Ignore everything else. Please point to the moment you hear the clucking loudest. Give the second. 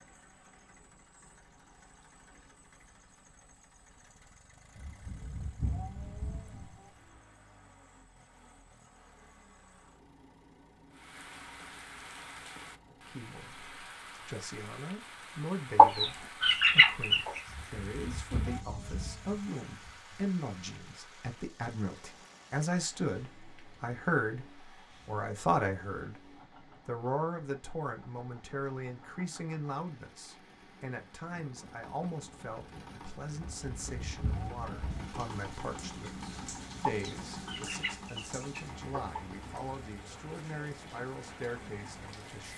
16 s.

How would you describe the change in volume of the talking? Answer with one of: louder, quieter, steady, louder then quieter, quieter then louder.
louder then quieter.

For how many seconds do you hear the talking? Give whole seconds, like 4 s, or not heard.
29 s.